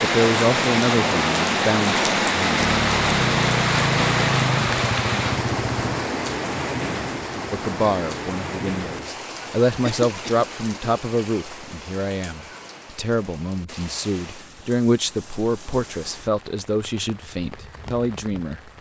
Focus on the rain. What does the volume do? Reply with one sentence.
The loudness of the rain goes down.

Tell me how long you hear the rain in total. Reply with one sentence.
The rain can be heard for 19 seconds in total.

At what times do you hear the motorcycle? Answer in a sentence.
The motorcycle can be heard from 2.5 to 6.0 s.